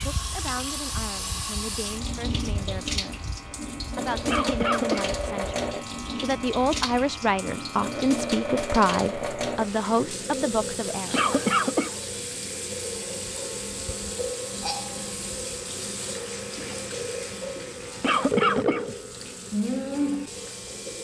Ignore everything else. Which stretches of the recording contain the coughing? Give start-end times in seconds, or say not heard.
4.2-5.2, 11.1-11.9, 18.0-18.9.